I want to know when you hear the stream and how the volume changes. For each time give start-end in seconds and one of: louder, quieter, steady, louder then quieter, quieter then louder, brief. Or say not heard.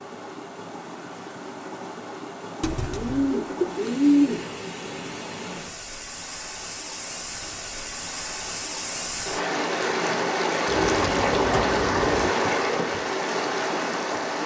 0.0-14.4 louder.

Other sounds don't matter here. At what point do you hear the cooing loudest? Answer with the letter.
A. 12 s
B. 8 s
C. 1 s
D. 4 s
D.